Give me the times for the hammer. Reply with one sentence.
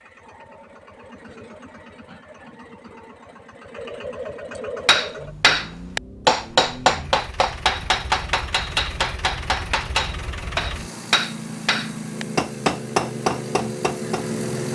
The hammer can be heard from 4.8 to 14.3 s.